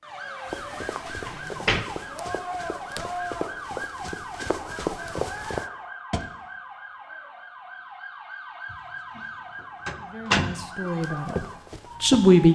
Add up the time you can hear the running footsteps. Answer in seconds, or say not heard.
7 s.